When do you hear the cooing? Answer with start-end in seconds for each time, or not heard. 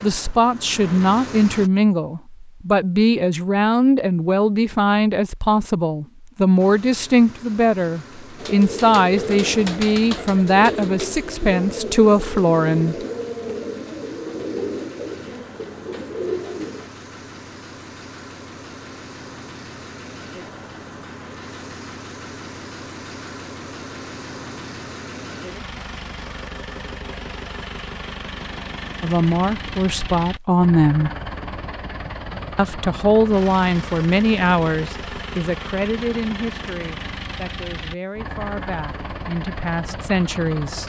8.3-16.9.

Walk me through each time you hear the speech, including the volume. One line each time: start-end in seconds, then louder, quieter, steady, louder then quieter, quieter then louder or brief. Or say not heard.
0.0-12.9 steady
29.0-31.1 brief
32.5-40.8 quieter then louder.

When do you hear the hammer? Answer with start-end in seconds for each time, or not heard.
not heard.